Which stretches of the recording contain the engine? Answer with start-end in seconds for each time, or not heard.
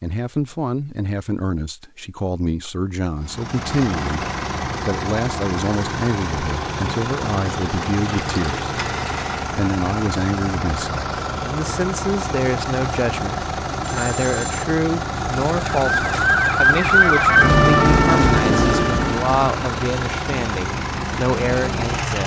3.2-22.2.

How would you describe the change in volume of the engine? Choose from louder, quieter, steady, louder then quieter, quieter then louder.
steady.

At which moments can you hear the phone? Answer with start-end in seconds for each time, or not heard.
8.0-9.4, 13.8-14.7.